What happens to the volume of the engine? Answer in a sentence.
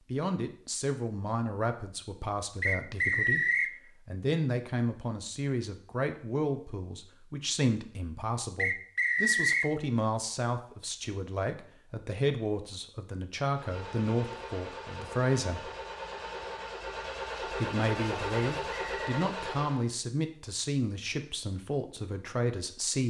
The loudness of the engine goes up.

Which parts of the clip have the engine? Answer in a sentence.
You can hear the engine from 13.5 to 19.9 s.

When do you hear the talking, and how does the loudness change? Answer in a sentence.
The talking can be heard from 0.1 to 15.7 s, at a steady volume; and from 17.4 to 23.0 s, at a steady volume.